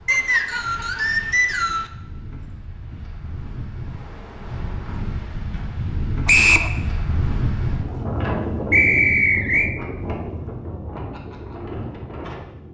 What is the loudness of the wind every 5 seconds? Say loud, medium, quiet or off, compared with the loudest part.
medium, loud, medium.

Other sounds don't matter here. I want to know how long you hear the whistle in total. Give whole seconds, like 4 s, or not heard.
3 s.